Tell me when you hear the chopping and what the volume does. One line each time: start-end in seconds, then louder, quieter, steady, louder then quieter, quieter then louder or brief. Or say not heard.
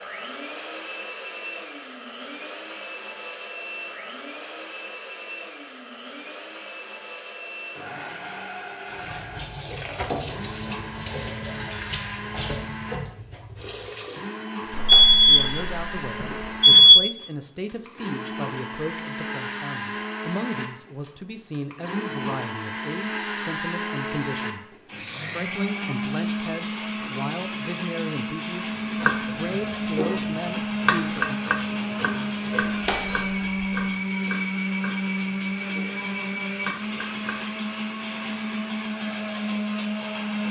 28.8-37.4 louder then quieter.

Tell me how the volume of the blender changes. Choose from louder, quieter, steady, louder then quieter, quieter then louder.
louder.